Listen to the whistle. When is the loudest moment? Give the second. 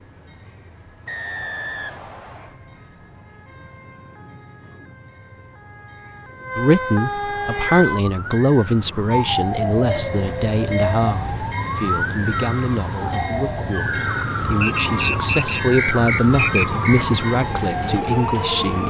15 s.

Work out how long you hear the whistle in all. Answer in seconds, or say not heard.
4 s.